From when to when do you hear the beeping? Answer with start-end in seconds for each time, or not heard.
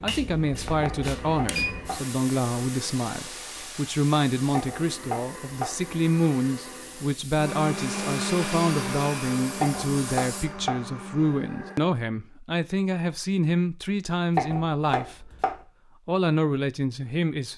0.7-1.8.